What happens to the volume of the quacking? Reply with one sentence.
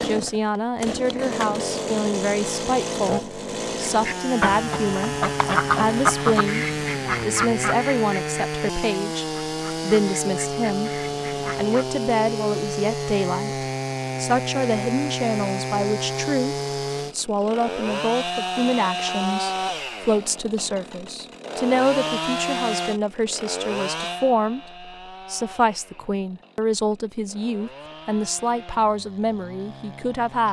The volume of the quacking goes down.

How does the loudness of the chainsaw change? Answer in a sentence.
The loudness of the chainsaw goes down.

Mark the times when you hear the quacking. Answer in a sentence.
The quacking can be heard from 3.8 to 11.8 s.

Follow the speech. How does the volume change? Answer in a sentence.
The volume of the speech stays about the same.